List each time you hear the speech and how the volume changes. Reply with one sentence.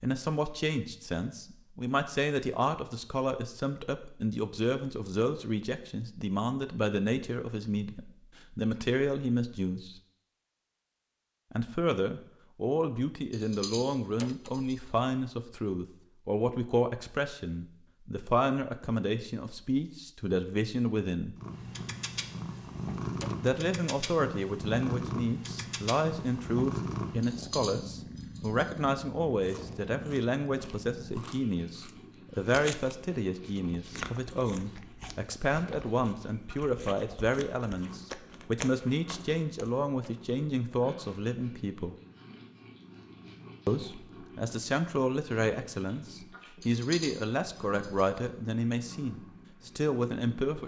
The speech can be heard from 0.0 to 10.0 s, at a steady volume; from 11.5 to 21.4 s, at a steady volume; from 23.4 to 42.0 s, at a steady volume; and from 43.6 to 50.6 s, at a steady volume.